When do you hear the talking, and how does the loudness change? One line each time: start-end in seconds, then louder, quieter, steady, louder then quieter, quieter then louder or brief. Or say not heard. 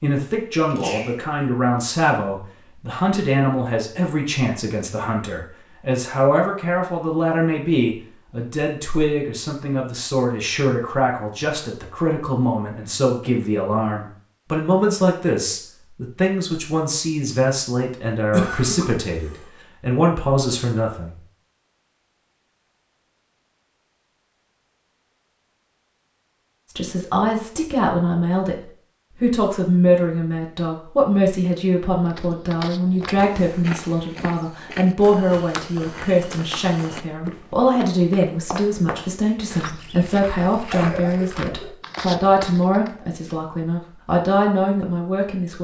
0.0-21.1 steady
26.7-45.5 steady.